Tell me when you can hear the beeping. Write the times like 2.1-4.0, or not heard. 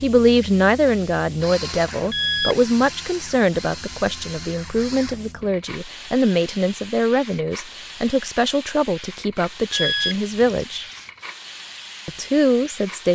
2.1-3.0, 9.7-11.0.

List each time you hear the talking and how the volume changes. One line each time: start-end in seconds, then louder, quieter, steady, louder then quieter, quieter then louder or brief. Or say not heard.
0.0-10.8 steady
12.1-13.0 brief.